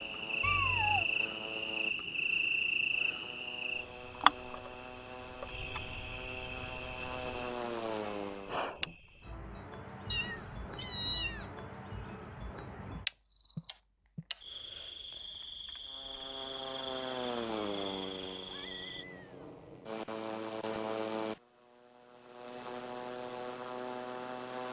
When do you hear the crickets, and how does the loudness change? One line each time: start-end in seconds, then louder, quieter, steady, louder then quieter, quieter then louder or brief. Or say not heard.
0.0-19.1 quieter.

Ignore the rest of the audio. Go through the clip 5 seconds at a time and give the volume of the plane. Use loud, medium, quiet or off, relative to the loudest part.
medium, loud, off, loud, loud.